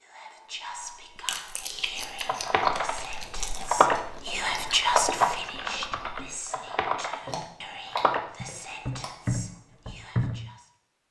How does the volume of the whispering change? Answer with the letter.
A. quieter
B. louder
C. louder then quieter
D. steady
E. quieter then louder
C.